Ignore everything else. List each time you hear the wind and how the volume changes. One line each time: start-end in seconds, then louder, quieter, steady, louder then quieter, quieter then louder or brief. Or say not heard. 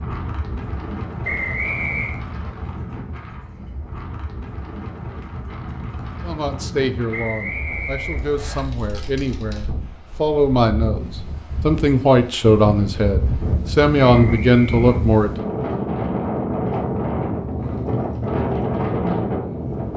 0.0-19.9 louder.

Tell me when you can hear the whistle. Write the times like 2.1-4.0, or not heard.
1.2-2.1, 7.1-8.7, 14.0-15.0.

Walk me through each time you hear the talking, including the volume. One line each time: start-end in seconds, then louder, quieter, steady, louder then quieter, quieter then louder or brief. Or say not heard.
6.2-15.3 louder.